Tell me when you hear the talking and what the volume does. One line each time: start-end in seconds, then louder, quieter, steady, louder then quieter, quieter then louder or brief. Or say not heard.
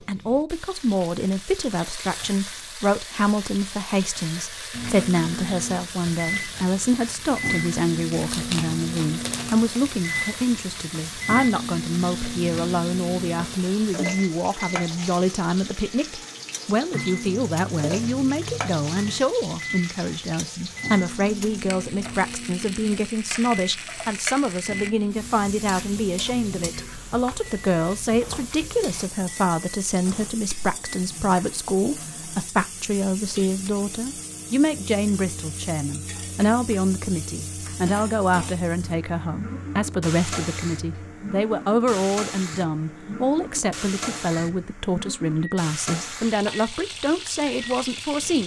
0.1-48.4 steady.